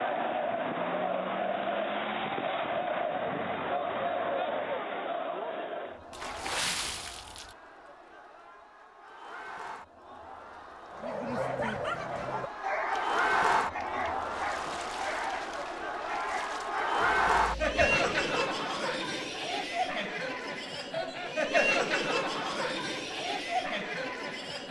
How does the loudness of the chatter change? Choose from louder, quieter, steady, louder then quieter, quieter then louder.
quieter then louder.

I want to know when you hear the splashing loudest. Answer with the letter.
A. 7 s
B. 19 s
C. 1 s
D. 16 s
A.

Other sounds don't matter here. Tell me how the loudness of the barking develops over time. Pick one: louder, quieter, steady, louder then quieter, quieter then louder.
quieter.